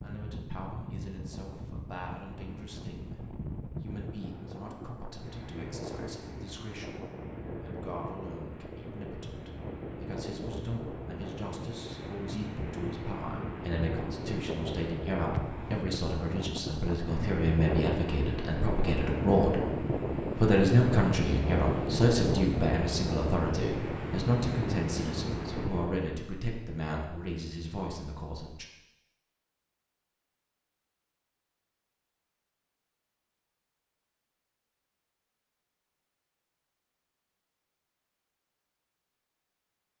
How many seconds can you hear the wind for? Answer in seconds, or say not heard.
26 s.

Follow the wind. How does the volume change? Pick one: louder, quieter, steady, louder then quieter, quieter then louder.
louder.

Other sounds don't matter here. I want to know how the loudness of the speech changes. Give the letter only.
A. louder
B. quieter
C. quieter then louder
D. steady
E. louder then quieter
E.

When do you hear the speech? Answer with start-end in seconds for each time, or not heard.
0.0-19.6, 20.4-28.6.